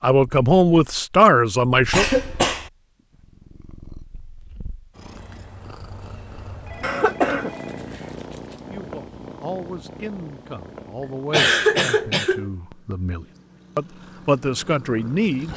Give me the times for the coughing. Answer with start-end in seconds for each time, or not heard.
1.9-2.7, 6.8-8.4, 11.0-12.5.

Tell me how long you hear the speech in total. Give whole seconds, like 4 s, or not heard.
9 s.